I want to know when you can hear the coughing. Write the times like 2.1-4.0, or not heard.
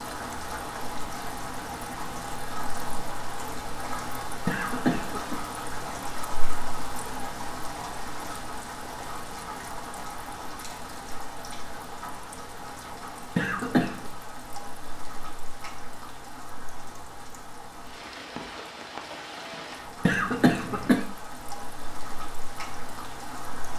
4.5-5.4, 13.3-14.1, 20.1-21.1.